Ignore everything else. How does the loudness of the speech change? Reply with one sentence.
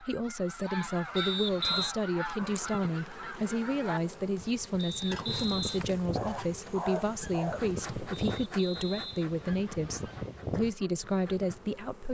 The loudness of the speech stays about the same.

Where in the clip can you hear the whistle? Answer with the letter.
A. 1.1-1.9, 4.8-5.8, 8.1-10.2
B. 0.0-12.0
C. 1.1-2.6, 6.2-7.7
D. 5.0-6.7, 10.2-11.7
A.